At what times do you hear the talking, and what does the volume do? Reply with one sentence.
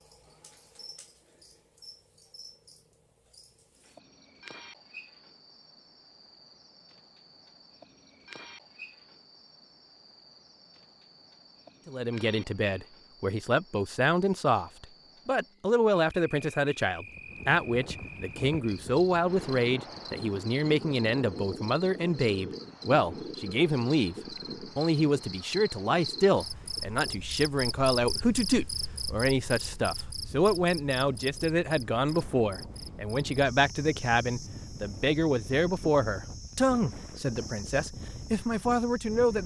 The talking can be heard from 11.8 to 39.4 s, at a steady volume.